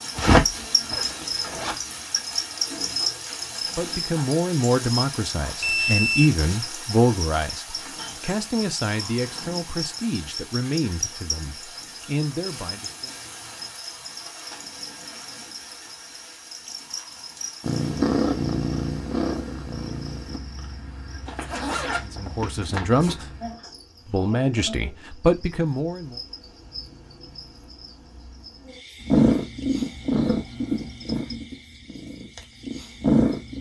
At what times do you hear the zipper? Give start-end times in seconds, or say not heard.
0.1-1.8, 21.2-23.1.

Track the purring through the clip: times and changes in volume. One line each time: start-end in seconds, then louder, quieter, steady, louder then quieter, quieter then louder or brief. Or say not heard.
17.6-20.4 brief
29.1-33.5 quieter then louder.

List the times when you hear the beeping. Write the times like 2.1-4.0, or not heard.
5.6-6.3.